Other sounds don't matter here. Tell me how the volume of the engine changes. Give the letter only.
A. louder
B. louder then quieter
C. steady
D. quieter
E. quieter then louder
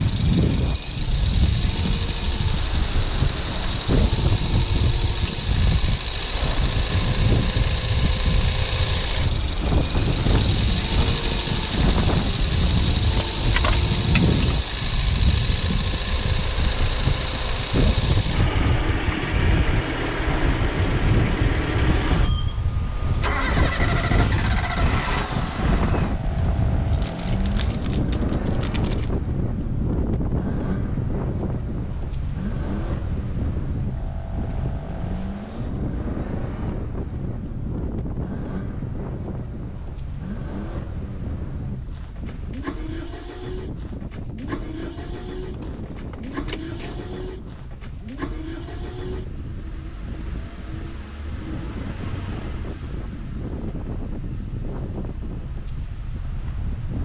D.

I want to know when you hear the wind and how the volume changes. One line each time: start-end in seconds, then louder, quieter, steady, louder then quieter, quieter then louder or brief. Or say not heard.
0.0-57.0 quieter.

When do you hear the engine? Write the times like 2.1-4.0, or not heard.
0.0-57.0.